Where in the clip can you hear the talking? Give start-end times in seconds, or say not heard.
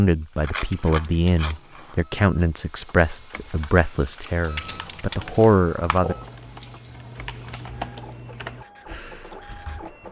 0.0-6.2.